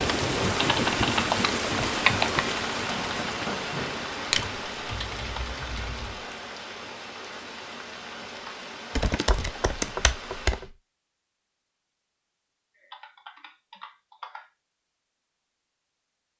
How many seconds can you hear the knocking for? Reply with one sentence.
You can hear the knocking for 3 seconds altogether.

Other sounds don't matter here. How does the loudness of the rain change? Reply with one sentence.
The volume of the rain goes down.